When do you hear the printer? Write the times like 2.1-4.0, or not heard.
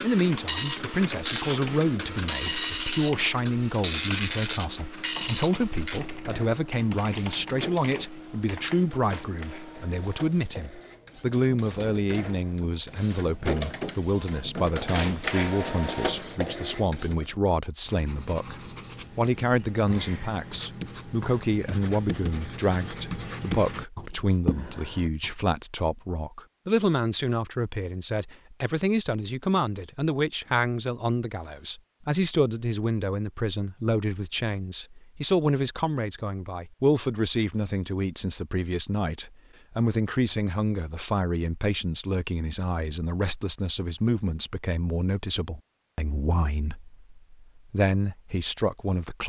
0.0-17.4.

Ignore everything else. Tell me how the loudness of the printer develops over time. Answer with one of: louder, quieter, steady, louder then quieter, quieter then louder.
quieter then louder.